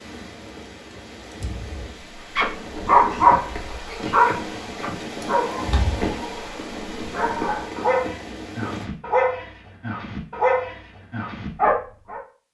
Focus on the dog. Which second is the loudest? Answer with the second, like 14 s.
3 s.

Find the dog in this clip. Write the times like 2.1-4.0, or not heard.
2.3-12.2.